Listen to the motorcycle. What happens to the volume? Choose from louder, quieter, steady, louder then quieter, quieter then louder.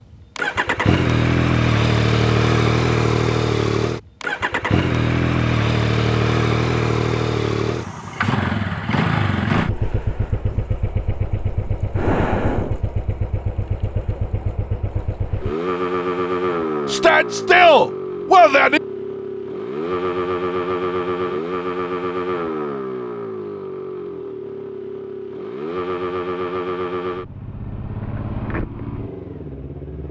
quieter.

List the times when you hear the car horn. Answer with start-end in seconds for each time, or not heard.
not heard.